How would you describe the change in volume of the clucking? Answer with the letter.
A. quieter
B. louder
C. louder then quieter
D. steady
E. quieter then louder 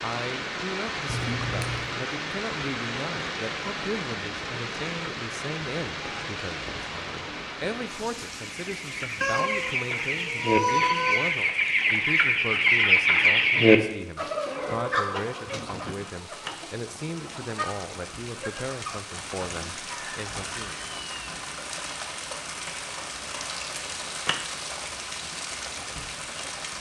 C.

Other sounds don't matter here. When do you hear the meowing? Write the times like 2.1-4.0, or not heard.
1.1-1.9, 9.2-11.3, 20.3-21.4.